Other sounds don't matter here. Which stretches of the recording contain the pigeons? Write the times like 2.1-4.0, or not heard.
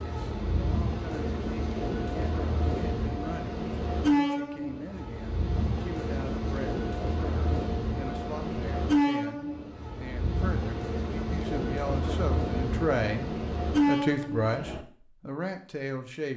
not heard.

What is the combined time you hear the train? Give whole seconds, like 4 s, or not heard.
15 s.